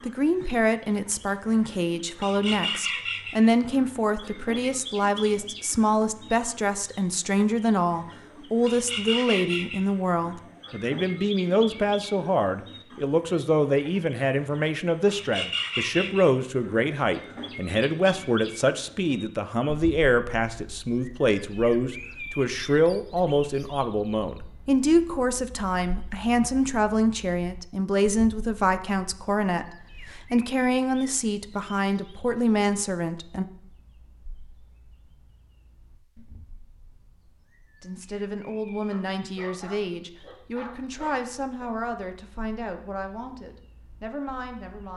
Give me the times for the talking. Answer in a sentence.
The talking can be heard from 0.1 to 33.5 s and from 37.8 to 44.9 s.